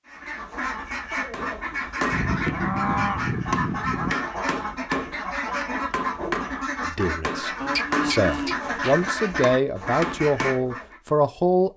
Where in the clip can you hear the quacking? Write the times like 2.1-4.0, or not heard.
0.1-11.0.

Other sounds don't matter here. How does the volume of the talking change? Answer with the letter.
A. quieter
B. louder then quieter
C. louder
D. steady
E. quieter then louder
C.